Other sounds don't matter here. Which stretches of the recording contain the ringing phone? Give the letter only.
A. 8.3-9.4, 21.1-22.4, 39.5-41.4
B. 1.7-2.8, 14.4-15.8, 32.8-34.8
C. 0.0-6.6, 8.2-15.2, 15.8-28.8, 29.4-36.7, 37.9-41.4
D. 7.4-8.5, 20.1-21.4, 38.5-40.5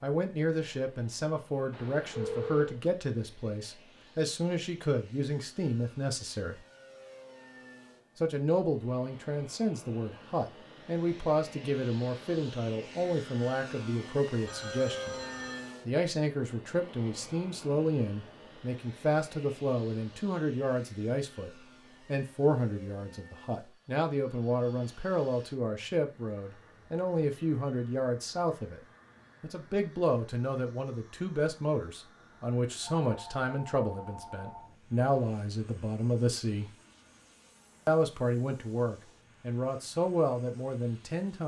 B.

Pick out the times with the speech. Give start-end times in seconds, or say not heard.
0.0-6.6, 8.2-15.2, 15.8-28.8, 29.4-36.7, 37.9-41.4.